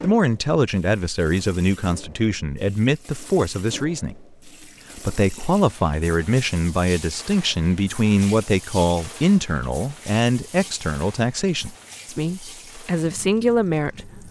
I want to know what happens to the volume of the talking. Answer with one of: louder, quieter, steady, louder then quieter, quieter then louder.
steady.